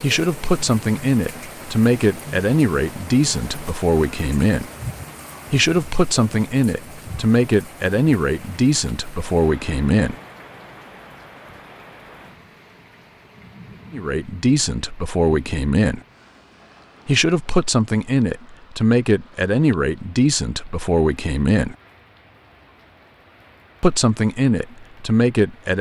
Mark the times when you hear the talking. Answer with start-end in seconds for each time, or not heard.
0.0-4.7, 5.5-10.2, 13.9-16.0, 17.1-21.8, 23.8-25.7.